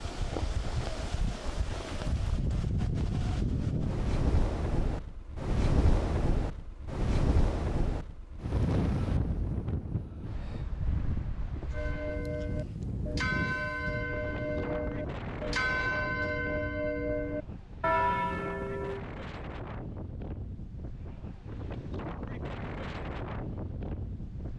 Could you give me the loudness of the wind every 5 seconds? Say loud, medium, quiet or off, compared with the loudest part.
loud, loud, medium, medium, medium.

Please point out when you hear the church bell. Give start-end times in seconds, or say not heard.
11.7-19.1.